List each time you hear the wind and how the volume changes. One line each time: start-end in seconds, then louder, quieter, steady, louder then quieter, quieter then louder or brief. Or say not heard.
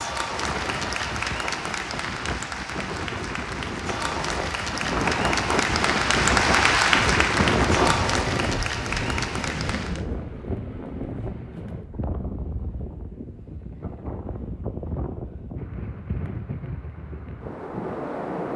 0.0-18.5 louder then quieter.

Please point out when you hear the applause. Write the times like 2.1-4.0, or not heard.
0.0-10.1.